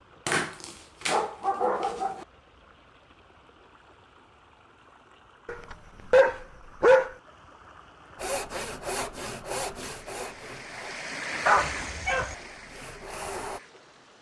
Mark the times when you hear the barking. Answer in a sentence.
You can hear the barking from 0.2 to 2.2 s, from 5.5 to 7.1 s and from 11.4 to 12.3 s.